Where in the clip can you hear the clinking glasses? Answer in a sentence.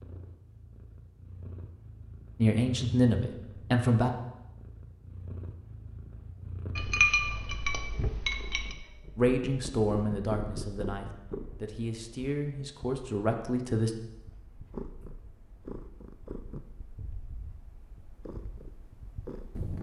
The clinking glasses can be heard from 6.8 to 8.8 s.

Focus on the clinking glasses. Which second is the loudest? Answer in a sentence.
The volume of the clinking glasses peaks at 7 seconds.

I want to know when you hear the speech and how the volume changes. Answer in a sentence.
The speech can be heard briefly from 2.4 to 4.1 s; and from 9.2 to 13.9 s, getting quieter then louder.